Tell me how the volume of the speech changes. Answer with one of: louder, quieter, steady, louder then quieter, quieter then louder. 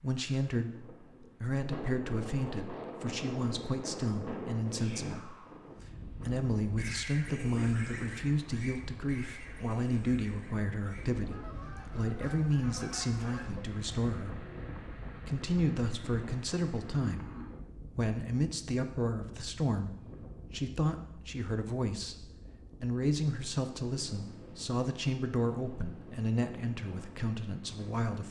steady.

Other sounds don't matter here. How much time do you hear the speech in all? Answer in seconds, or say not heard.
27 s.